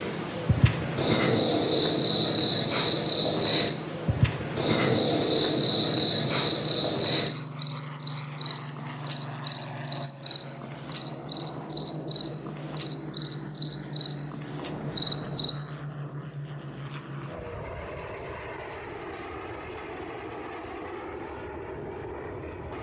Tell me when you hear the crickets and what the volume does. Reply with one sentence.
You can hear the crickets from 0.0 to 15.5 s, at a steady volume.